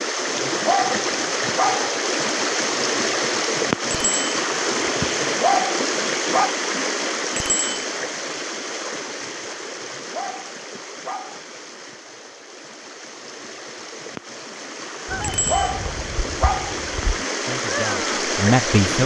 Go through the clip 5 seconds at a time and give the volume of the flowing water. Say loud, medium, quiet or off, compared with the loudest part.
loud, loud, quiet, loud.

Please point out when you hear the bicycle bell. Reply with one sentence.
You can hear the bicycle bell from 3.9 to 4.3 s, from 7.3 to 7.8 s and from 15.2 to 15.7 s.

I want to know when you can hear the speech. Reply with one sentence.
The speech can be heard from 17.4 to 19.0 s.